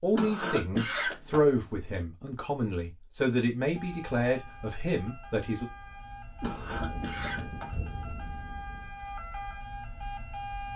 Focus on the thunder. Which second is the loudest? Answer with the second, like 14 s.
7 s.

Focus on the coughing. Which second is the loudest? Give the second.
1 s.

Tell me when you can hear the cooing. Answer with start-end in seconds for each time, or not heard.
not heard.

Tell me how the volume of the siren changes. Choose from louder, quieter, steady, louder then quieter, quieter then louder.
louder.